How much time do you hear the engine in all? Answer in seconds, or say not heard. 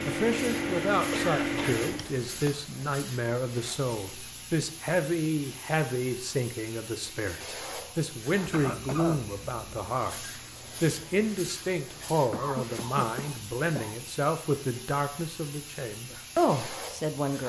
2 s.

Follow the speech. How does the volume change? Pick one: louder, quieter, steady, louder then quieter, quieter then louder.
steady.